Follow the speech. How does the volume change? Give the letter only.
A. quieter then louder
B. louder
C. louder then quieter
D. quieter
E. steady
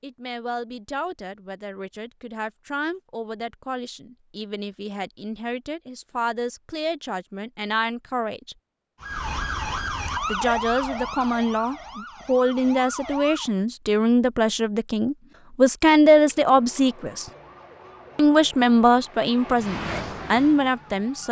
B.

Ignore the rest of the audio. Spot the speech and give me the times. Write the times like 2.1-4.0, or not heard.
0.0-8.6, 10.2-17.2, 18.1-21.2.